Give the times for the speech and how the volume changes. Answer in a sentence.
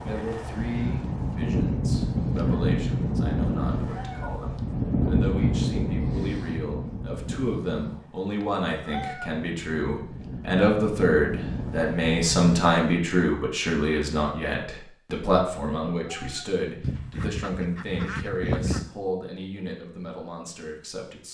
You can hear the speech from 0.1 to 21.2 s, getting louder then quieter.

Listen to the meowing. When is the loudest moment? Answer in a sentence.
The loudest moment of the meowing is at 9 seconds.